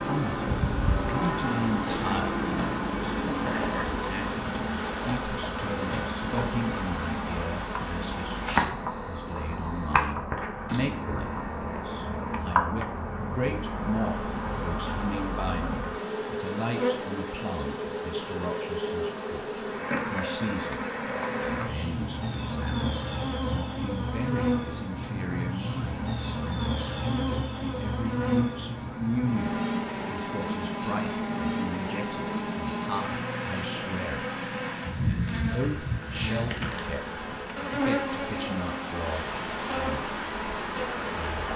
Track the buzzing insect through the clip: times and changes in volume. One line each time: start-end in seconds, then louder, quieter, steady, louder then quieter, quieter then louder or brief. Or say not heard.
0.0-41.5 steady.